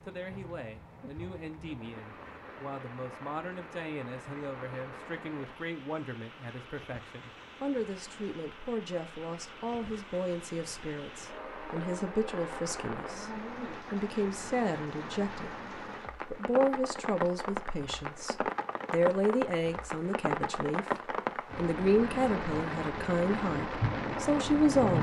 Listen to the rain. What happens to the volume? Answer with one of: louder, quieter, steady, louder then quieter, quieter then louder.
louder.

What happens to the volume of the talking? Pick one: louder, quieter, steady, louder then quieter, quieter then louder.
louder.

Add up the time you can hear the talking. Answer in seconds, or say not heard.
24 s.